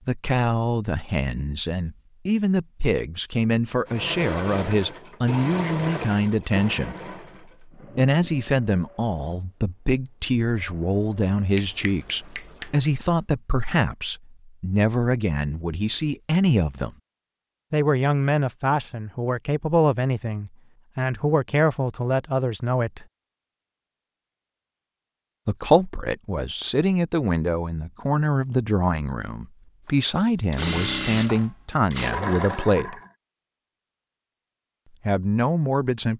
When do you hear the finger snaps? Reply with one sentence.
The finger snaps can be heard from 11.6 to 12.8 s.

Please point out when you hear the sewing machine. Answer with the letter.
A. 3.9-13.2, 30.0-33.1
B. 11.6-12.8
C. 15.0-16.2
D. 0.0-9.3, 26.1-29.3
A.